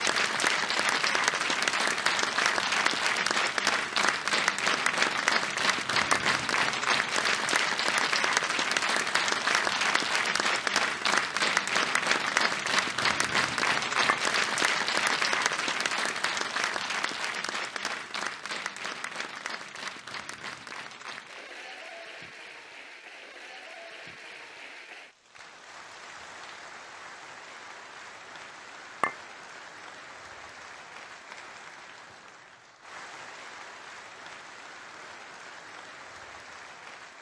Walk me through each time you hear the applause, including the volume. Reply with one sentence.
You can hear the applause from 0.0 to 37.1 s, getting quieter.